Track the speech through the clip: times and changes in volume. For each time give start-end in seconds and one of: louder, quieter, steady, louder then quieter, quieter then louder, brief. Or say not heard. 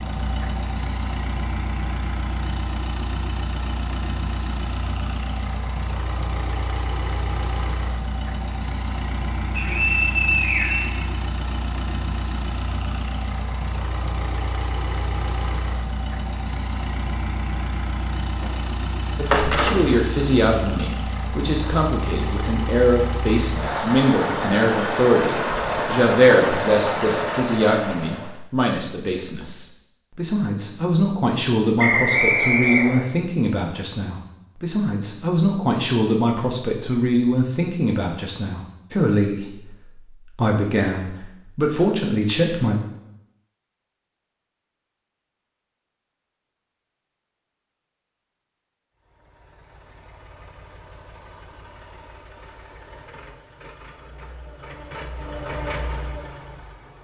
19.1-42.8 steady.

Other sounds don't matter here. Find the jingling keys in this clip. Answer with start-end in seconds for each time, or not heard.
18.4-20.0.